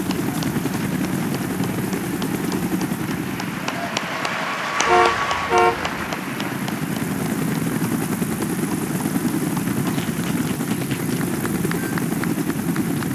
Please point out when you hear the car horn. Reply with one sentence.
The car horn can be heard from 4.8 to 6.0 s.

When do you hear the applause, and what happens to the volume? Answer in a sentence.
The applause can be heard from 0.0 to 13.1 s, getting louder then quieter.